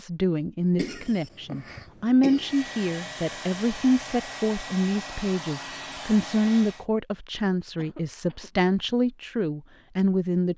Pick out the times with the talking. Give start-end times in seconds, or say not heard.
0.0-10.5.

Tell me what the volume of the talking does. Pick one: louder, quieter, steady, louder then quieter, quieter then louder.
steady.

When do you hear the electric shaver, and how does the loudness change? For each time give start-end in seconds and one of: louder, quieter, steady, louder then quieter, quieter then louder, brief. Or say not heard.
not heard.